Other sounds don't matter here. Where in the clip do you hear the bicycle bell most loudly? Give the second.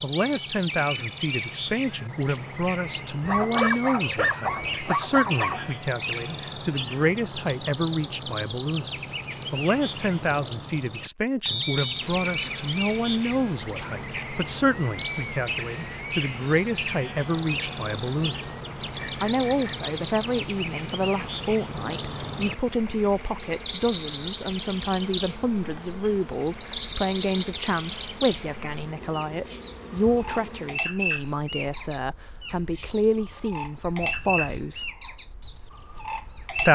12 s.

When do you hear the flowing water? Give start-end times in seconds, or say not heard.
not heard.